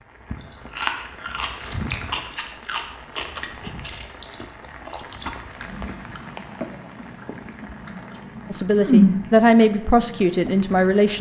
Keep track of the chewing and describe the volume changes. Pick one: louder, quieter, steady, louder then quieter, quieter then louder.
quieter then louder.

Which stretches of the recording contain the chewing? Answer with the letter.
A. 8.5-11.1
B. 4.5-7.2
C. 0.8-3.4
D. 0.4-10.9
D.